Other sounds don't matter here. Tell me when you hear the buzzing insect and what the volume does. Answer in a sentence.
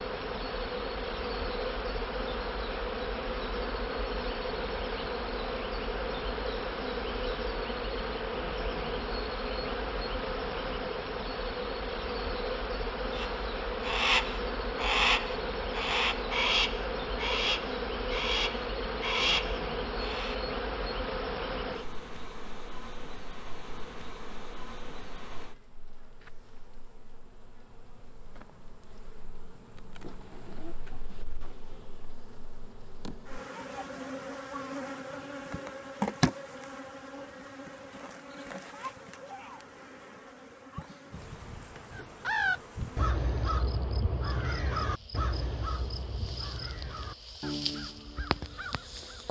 The buzzing insect can be heard from 0.0 to 49.2 s, getting quieter.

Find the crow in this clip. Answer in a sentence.
You can hear the crow from 13.2 to 20.4 s and from 42.0 to 49.2 s.